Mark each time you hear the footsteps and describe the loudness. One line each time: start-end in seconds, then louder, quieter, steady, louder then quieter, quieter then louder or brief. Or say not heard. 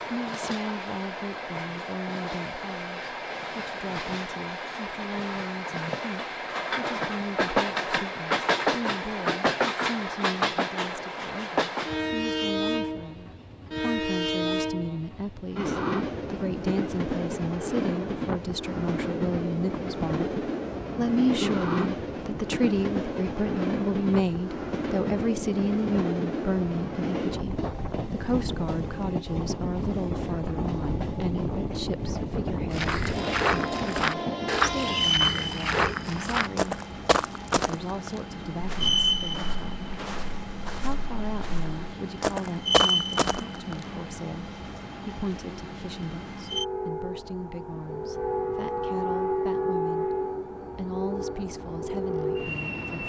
32.7-43.9 quieter then louder.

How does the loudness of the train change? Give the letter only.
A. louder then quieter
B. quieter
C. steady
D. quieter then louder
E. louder
C.